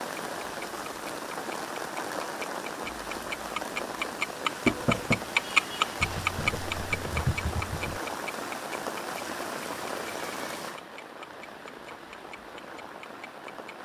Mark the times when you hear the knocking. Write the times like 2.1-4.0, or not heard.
4.7-5.2.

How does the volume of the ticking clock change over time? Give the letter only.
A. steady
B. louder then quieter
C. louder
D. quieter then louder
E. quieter
B.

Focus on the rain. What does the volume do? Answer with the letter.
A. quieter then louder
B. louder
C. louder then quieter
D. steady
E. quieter
E.